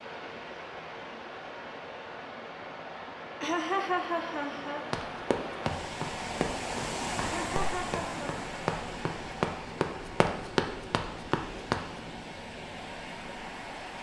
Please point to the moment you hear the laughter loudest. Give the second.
4 s.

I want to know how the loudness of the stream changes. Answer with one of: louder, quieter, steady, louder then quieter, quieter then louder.
louder then quieter.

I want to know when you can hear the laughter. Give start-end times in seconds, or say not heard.
3.4-4.8, 7.2-8.3.